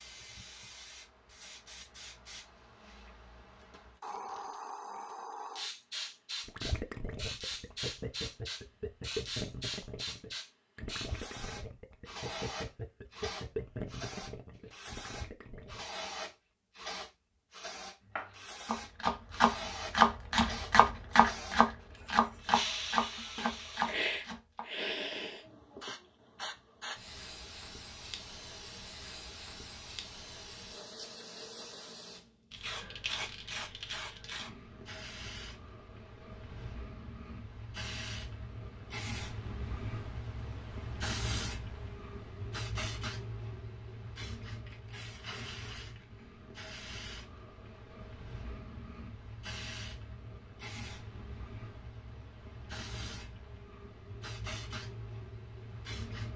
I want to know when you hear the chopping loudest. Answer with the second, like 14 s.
20 s.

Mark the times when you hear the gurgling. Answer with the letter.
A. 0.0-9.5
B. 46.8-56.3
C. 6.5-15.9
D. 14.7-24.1
C.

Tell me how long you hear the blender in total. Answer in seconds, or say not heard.
not heard.